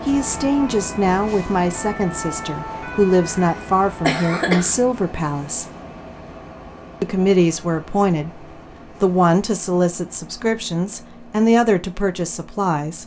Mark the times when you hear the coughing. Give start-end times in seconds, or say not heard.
3.4-4.8.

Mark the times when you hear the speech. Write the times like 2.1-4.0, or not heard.
0.1-5.7, 7.0-13.0.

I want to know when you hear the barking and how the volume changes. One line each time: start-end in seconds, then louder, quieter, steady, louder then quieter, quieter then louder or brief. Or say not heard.
not heard.